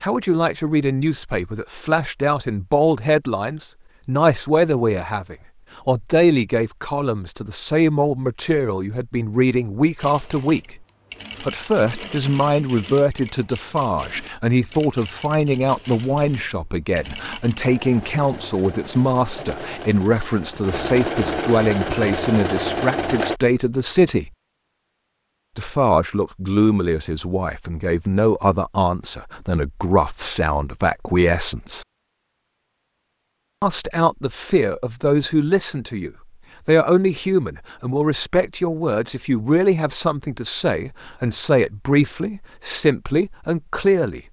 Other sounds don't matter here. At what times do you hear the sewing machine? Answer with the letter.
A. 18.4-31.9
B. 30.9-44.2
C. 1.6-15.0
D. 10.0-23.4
D.